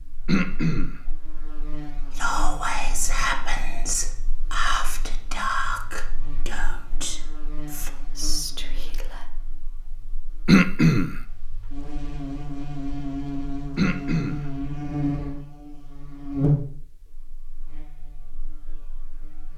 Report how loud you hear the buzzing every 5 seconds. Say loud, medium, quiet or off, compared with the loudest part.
quiet, quiet, loud, loud.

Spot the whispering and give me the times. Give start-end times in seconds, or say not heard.
2.1-9.2.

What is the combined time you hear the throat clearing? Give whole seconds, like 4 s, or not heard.
2 s.